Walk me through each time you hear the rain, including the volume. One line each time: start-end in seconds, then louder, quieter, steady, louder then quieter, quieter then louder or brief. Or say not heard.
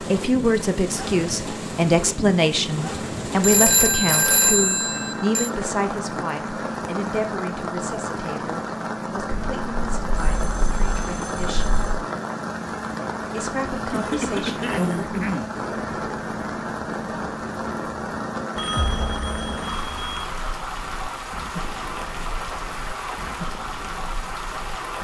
0.0-24.9 steady.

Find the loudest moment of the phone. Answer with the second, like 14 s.
4 s.